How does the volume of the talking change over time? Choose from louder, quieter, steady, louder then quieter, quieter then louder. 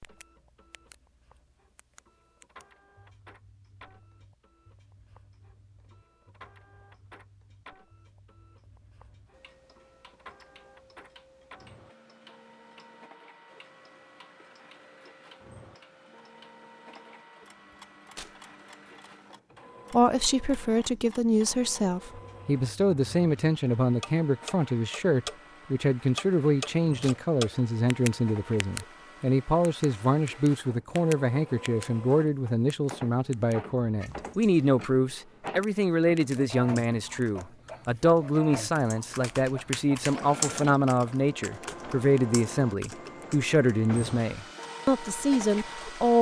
steady.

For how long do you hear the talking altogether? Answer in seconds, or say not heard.
26 s.